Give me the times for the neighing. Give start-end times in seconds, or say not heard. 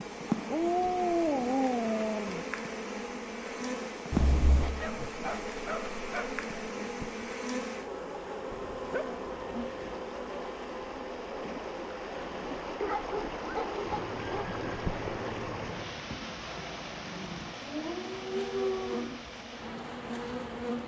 4.1-5.0, 13.8-15.8.